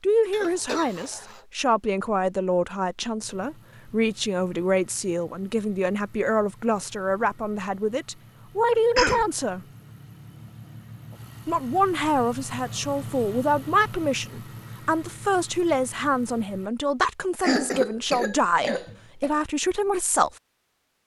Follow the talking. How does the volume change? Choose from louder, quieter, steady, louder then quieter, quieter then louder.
steady.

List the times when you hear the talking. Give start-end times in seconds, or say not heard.
0.0-9.7, 11.4-20.3.